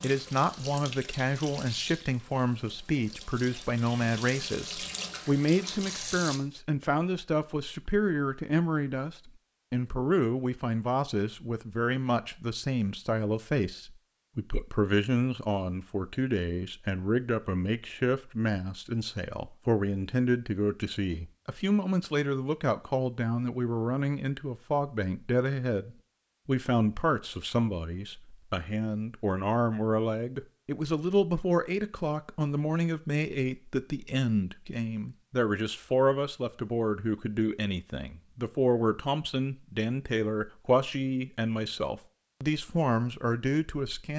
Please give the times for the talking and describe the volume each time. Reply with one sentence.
You can hear the talking from 0.0 to 44.1 s, at a steady volume.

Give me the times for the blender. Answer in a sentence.
The blender can't be heard in this clip.